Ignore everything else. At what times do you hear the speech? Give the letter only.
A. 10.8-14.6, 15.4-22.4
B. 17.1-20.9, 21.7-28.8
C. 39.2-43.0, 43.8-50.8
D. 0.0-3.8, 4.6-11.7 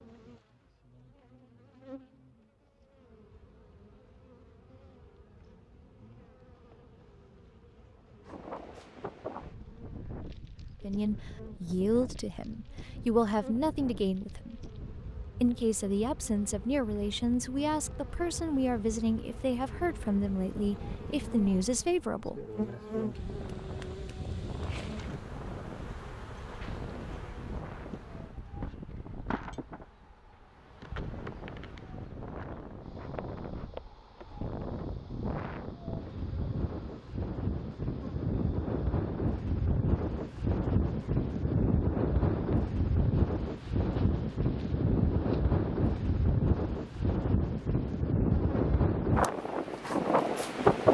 A.